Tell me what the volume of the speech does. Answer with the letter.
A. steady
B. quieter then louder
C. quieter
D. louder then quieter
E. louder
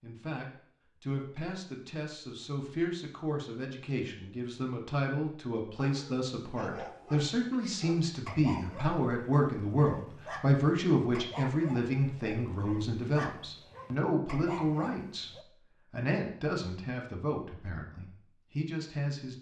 D.